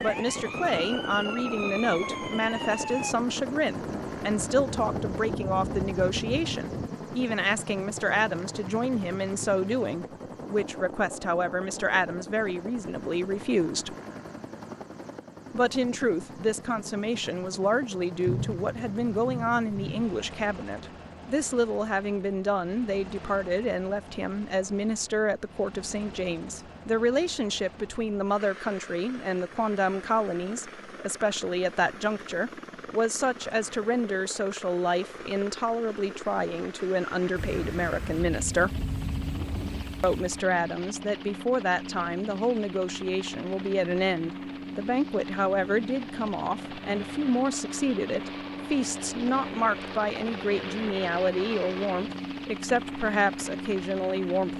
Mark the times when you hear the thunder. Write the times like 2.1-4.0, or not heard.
3.8-6.9, 18.2-20.1, 37.4-40.5.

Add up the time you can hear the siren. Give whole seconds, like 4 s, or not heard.
3 s.